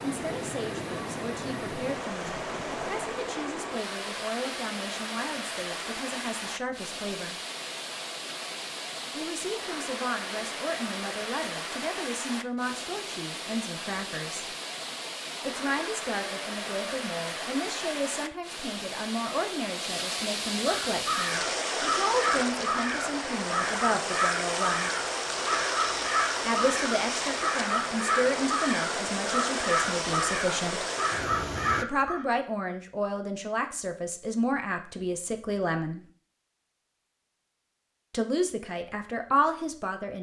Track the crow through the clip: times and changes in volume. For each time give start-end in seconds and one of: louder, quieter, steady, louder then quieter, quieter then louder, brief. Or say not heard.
20.6-32.2 steady.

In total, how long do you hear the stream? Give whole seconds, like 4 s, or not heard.
32 s.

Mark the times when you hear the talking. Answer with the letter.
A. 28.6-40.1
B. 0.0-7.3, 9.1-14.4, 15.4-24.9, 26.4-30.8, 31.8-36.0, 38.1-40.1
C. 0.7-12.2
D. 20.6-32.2
B.